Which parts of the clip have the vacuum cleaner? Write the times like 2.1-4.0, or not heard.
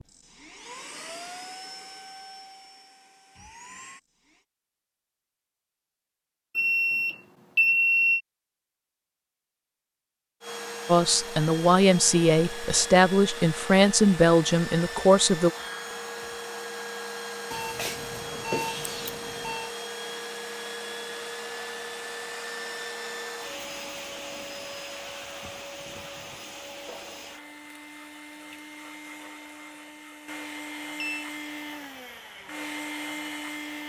0.0-4.4, 10.4-33.8.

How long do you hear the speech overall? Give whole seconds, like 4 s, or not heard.
5 s.